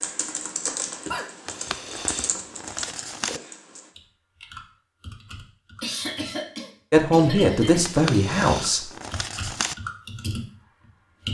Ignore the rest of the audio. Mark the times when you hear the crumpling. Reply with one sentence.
The crumpling can be heard from 1.4 to 3.4 s and from 7.8 to 9.8 s.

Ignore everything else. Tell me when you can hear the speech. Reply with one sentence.
You can hear the speech from 6.9 to 8.8 s.